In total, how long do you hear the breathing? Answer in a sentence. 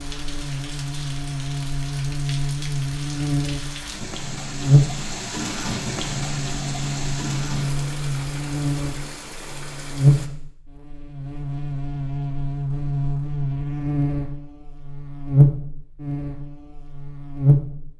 You can't hear the breathing here.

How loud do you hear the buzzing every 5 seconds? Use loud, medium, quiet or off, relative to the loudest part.
loud, medium, loud, loud.